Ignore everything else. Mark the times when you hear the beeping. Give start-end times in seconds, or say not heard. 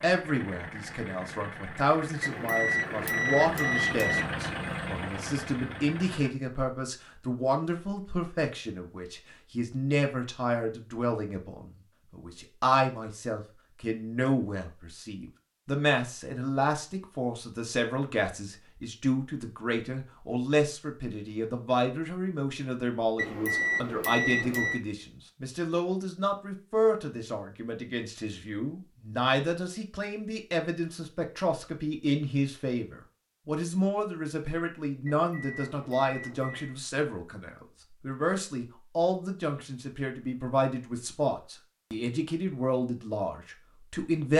2.2-4.2, 23.1-24.8, 35.0-36.8.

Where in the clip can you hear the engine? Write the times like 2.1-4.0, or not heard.
0.0-6.3.